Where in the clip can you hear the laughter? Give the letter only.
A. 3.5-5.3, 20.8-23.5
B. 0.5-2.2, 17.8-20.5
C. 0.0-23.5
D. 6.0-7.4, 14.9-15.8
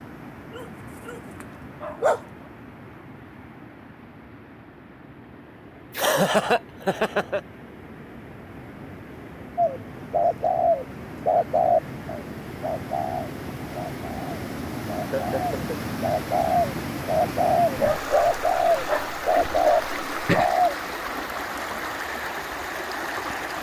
D.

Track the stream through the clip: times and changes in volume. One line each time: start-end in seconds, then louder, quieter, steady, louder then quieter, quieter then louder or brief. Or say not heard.
0.0-23.5 louder.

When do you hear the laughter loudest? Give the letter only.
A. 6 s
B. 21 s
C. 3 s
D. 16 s
A.